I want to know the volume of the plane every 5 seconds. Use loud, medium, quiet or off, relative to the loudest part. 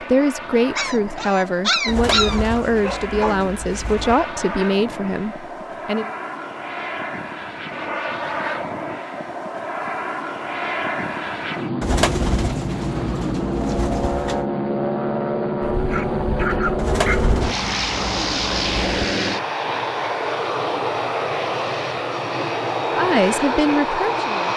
medium, medium, loud, loud, loud.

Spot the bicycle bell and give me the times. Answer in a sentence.
The bicycle bell can't be heard in this clip.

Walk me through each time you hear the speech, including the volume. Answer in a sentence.
The speech can be heard from 0.1 to 6.1 s, at a steady volume; and briefly from 22.9 to 24.5 s.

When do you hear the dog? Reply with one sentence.
You can hear the dog from 0.8 to 3.5 s and from 15.6 to 17.4 s.